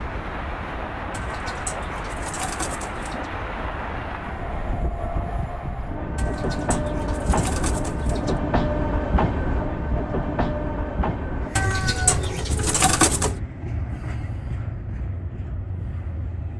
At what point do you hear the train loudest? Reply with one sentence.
The loudest moment of the train is at 9 seconds.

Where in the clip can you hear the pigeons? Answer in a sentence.
You can hear the pigeons from 1.1 to 3.3 s, from 6.2 to 8.4 s and from 11.6 to 13.4 s.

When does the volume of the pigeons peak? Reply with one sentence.
The loudest moment of the pigeons is at 13 seconds.